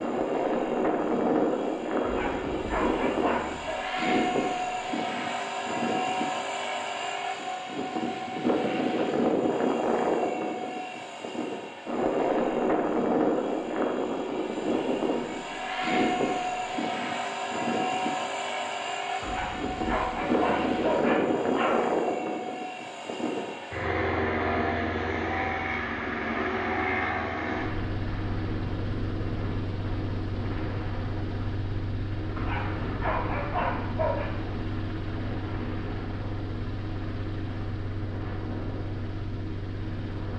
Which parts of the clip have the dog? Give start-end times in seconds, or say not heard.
2.0-3.8, 19.2-21.9, 32.4-34.3.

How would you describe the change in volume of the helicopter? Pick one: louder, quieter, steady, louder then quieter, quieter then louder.
quieter.